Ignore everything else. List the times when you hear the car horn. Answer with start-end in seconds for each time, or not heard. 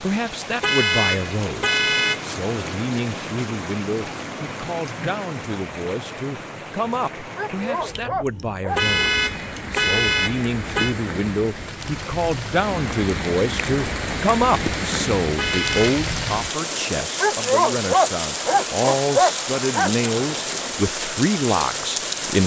0.6-2.2, 8.8-10.9, 15.3-16.0.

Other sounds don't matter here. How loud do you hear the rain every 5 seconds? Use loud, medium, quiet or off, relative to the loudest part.
medium, medium, loud, loud, loud.